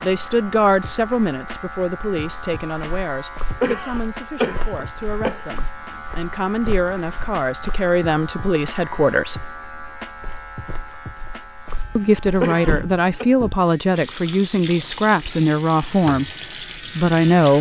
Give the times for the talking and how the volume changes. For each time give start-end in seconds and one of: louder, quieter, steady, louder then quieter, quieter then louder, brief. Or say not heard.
0.0-9.6 quieter then louder
11.9-17.5 steady.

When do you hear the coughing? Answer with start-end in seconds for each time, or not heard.
3.6-5.4, 12.4-13.2.